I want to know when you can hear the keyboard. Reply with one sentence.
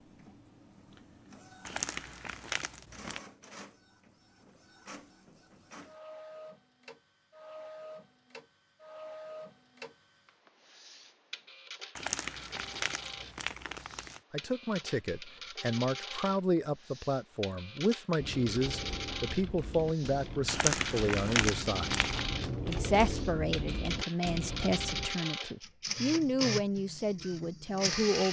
You can hear the keyboard from 18.1 to 25.1 s.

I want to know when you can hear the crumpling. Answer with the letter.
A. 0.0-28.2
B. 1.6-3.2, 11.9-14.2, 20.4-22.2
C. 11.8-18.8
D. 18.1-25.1
B.